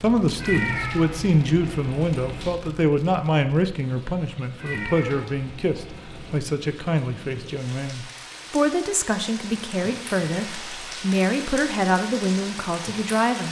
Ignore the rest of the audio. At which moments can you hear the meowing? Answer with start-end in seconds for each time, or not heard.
0.3-2.5, 4.5-6.4, 10.3-10.8.